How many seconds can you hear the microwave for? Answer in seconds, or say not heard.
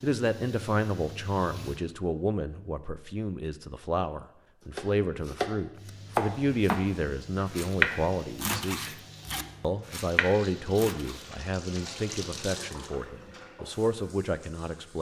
not heard.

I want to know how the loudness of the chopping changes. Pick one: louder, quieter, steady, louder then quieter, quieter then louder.
louder then quieter.